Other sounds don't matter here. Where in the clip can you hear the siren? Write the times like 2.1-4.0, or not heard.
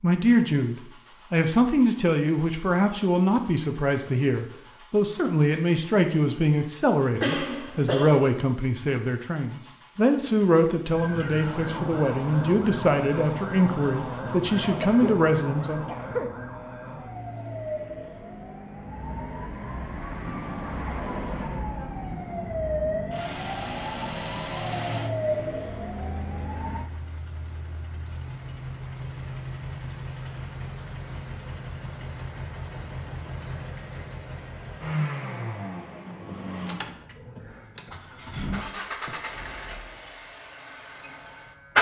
10.9-26.9.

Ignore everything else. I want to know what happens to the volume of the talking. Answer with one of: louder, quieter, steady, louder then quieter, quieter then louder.
steady.